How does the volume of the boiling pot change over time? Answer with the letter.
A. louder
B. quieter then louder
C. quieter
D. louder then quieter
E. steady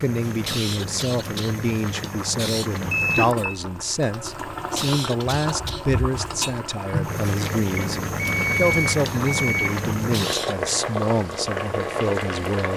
A.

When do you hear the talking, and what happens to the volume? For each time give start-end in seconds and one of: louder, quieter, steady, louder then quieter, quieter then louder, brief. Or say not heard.
0.0-12.7 steady.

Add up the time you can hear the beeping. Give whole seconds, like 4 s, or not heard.
3 s.